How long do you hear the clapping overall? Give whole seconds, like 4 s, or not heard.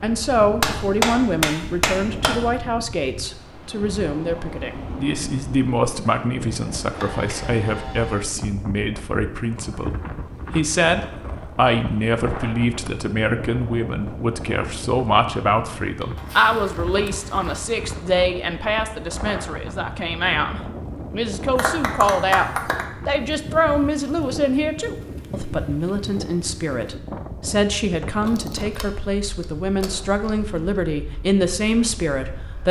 3 s.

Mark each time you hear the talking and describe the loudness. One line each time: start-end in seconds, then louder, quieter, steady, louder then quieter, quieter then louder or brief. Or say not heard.
0.0-32.6 steady.